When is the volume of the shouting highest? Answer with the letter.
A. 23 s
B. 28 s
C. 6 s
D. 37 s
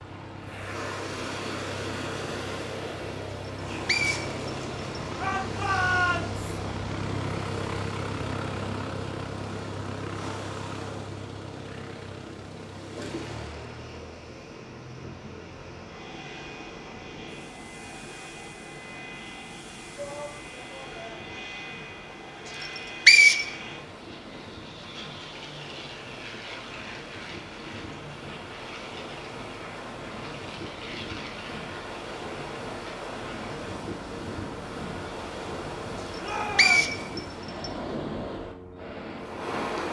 C.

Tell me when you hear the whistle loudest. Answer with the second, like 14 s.
23 s.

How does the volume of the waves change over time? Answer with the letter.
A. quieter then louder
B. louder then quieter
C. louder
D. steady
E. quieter
A.